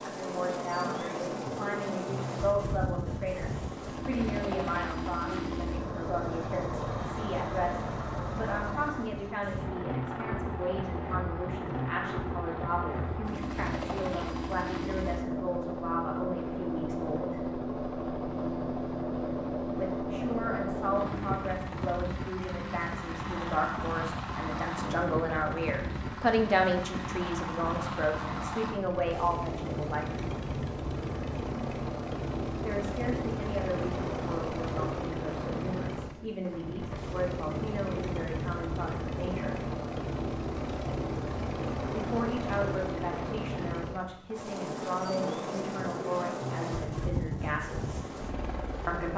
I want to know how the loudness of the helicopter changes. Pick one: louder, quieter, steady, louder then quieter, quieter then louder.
steady.